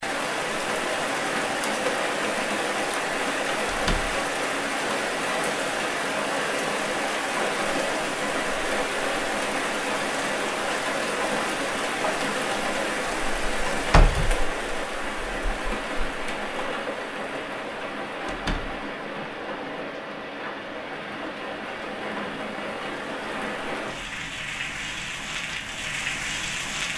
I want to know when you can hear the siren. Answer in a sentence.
The siren can't be heard in this clip.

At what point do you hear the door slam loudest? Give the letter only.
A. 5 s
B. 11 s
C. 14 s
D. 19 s
C.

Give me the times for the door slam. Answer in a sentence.
You can hear the door slam from 3.6 to 4.1 s, from 13.8 to 14.3 s and from 18.2 to 18.7 s.